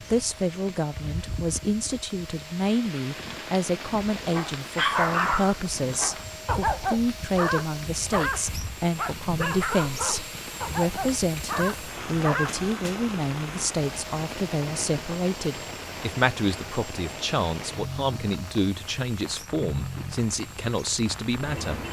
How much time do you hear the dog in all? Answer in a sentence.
You can hear the dog for 9 seconds altogether.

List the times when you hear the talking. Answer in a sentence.
The talking can be heard from 0.1 to 21.8 s.